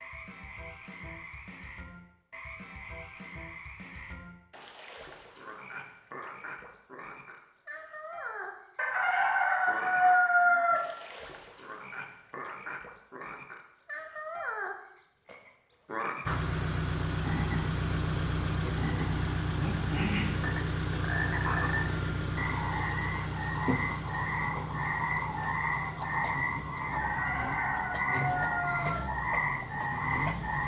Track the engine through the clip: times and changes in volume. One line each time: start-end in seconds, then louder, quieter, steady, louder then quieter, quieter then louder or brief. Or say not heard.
16.2-30.6 quieter.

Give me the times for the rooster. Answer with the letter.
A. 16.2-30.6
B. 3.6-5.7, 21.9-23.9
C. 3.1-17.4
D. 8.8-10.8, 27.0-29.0
D.